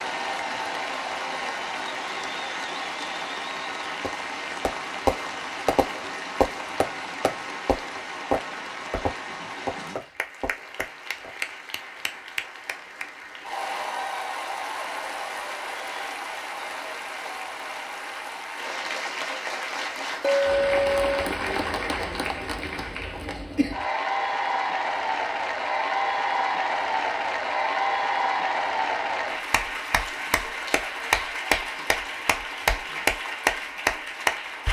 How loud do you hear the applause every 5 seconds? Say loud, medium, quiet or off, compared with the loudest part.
medium, medium, medium, medium, loud, loud, loud.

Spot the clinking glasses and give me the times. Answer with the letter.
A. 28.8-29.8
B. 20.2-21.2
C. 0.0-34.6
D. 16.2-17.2
B.